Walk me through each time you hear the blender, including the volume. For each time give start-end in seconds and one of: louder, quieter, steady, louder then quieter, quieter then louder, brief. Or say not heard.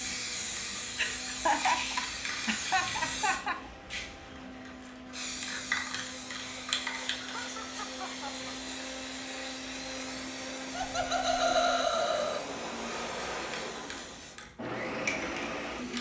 0.0-15.9 louder.